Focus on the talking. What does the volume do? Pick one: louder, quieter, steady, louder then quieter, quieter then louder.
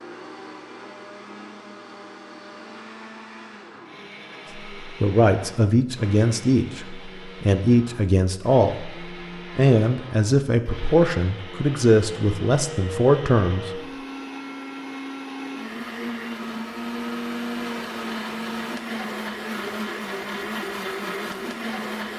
steady.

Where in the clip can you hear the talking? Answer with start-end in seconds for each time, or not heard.
4.8-13.7.